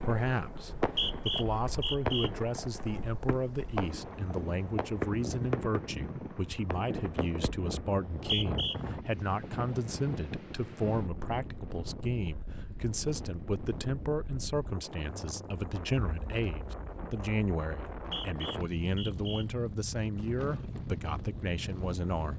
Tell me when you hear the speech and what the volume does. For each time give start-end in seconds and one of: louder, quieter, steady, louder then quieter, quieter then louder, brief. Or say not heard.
0.0-22.3 steady.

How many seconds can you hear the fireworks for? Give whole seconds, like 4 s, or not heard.
8 s.